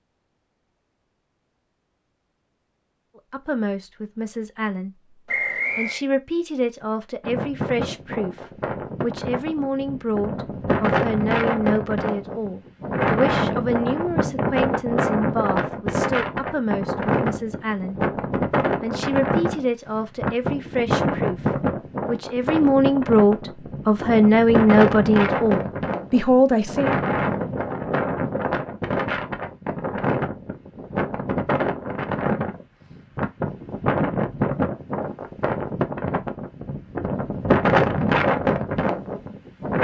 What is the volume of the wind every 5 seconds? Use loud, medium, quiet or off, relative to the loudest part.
off, medium, loud, loud, loud, loud, loud, loud.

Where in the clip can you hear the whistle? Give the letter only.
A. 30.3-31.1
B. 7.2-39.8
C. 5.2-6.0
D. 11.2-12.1
C.